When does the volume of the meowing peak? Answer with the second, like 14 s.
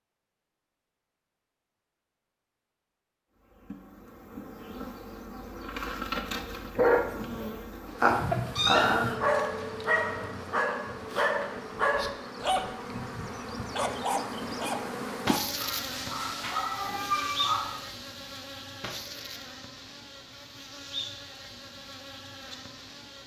9 s.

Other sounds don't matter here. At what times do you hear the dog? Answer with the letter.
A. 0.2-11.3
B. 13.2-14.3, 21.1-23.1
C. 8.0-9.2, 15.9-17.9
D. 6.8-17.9
D.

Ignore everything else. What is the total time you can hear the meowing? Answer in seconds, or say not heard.
3 s.